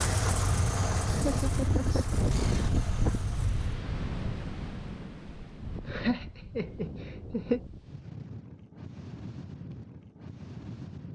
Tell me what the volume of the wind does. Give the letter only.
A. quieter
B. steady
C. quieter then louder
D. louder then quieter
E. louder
A.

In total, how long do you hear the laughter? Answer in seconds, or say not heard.
3 s.